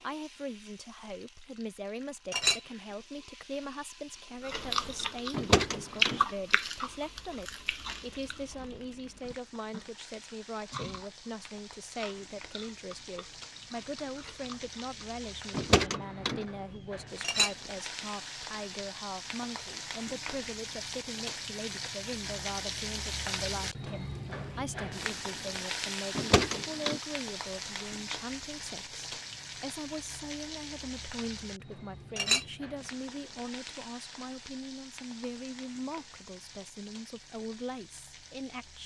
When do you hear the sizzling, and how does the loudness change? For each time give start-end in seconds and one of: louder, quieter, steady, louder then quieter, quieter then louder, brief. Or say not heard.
0.0-38.8 louder then quieter.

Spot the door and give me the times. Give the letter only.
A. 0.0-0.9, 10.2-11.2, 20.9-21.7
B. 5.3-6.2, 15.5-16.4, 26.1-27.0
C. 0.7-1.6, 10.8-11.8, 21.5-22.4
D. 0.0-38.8
B.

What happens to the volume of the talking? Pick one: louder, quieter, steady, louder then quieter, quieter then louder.
steady.